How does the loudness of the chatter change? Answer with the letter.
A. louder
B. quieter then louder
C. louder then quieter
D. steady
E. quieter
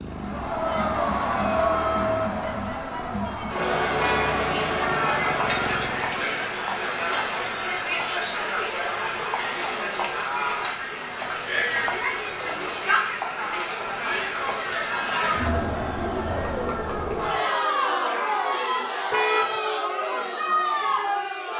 D.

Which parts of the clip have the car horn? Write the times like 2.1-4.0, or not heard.
4.0-4.4, 19.1-19.6.